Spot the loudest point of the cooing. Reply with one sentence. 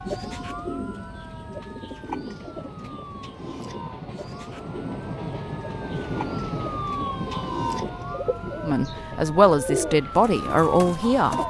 The loudest moment of the cooing is at 10 seconds.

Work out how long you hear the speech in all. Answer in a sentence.
The speech can be heard for 3 seconds in total.